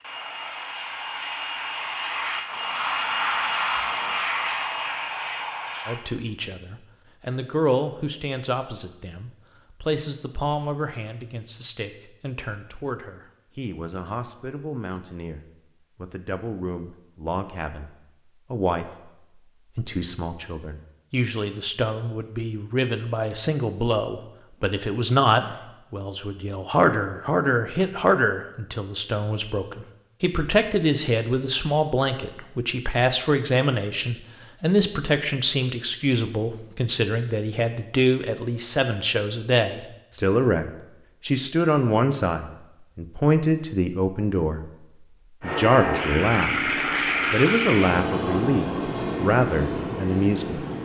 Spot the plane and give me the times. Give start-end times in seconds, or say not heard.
0.0-6.0, 45.4-50.8.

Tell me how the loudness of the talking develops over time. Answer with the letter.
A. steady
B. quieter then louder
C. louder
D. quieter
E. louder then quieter
C.